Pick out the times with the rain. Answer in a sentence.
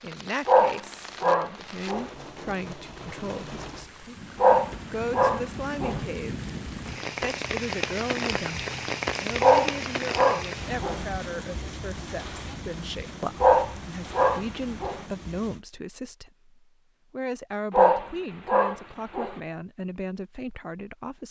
The rain can be heard from 0.0 to 15.7 s.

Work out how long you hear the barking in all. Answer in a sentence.
The barking can be heard for 8 seconds in total.